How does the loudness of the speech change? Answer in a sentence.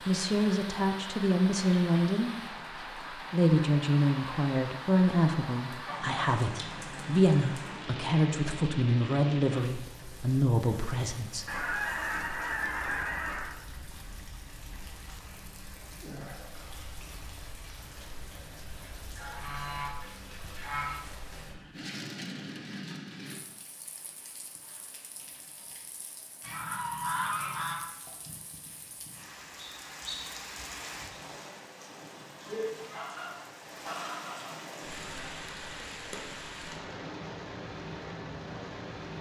The loudness of the speech stays about the same.